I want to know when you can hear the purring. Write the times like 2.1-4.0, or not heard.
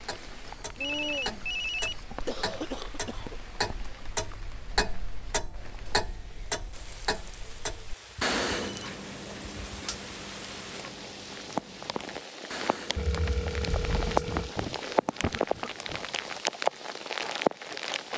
not heard.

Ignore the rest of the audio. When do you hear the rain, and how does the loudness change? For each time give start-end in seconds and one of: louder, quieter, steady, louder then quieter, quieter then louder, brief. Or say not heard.
0.0-18.1 quieter then louder.